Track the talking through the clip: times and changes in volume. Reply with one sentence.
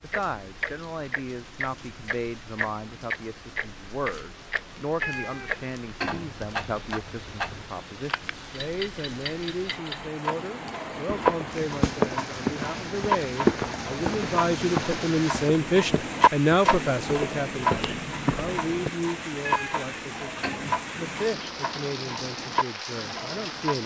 You can hear the talking from 0.0 to 23.8 s, getting louder then quieter.